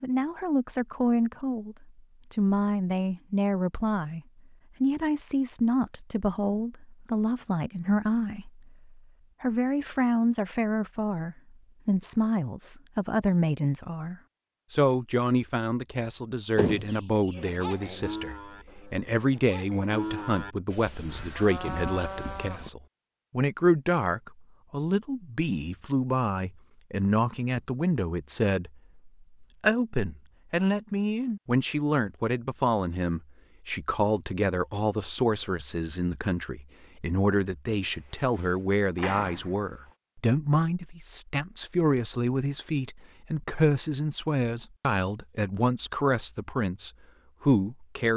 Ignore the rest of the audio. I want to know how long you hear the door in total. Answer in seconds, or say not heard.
2 s.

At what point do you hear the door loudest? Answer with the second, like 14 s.
17 s.